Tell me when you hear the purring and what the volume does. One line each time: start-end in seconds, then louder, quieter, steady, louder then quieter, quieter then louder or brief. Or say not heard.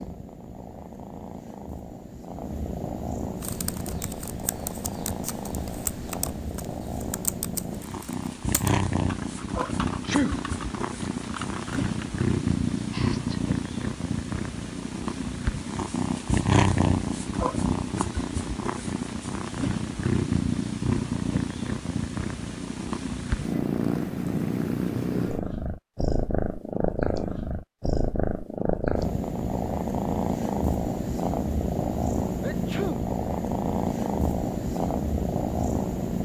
0.0-36.2 louder.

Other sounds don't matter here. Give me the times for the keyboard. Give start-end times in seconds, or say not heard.
3.4-12.1.